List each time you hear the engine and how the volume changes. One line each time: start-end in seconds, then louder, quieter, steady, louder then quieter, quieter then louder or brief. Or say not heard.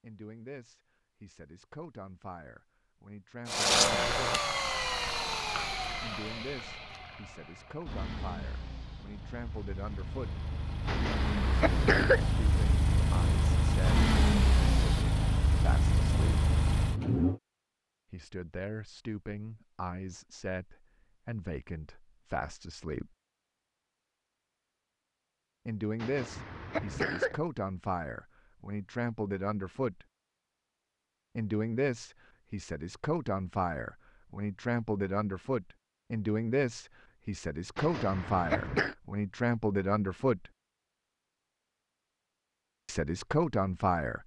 3.5-17.4 quieter then louder.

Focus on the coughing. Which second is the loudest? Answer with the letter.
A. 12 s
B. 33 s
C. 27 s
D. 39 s
A.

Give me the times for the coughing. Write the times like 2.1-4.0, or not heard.
10.8-12.3, 25.9-27.4, 37.8-39.0.